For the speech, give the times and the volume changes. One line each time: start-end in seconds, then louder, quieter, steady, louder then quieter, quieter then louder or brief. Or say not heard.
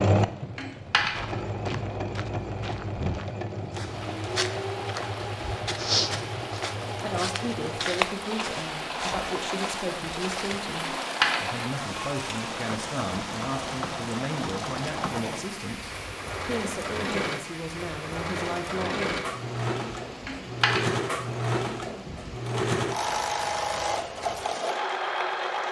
7.0-19.1 steady.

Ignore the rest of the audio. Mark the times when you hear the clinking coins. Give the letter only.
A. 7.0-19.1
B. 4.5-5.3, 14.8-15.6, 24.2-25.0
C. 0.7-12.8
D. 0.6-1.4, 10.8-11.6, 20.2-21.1
D.